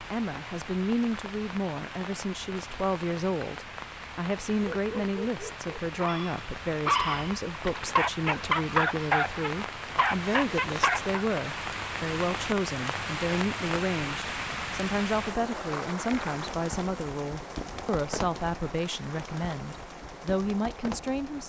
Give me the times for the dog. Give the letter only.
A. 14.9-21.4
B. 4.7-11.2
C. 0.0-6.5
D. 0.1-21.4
B.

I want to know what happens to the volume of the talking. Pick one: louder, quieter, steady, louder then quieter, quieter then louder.
steady.